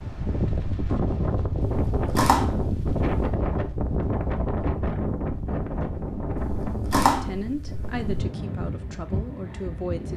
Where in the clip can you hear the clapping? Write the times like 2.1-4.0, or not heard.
not heard.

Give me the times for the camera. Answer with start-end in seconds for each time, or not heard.
1.6-3.4, 6.3-8.2.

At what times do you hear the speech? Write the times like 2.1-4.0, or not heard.
7.2-10.1.